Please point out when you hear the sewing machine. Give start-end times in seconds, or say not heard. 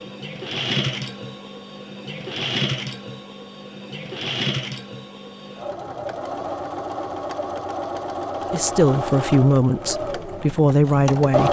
0.0-11.4.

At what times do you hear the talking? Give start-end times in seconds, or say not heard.
8.5-11.4.